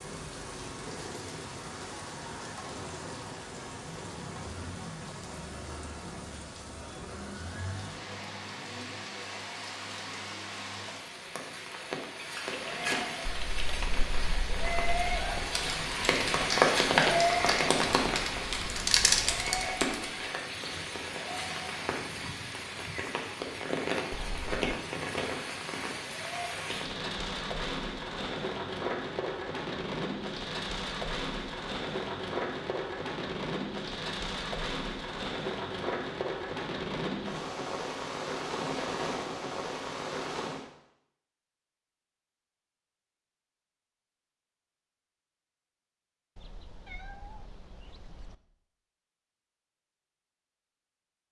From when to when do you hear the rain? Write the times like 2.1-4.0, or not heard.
0.0-40.6.